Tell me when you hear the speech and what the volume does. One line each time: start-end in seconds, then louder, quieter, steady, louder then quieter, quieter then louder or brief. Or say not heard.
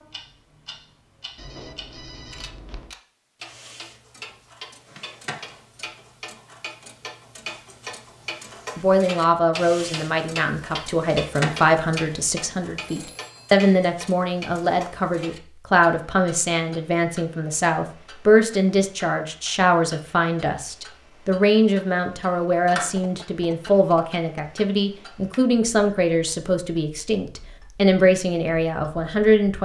8.8-29.6 steady.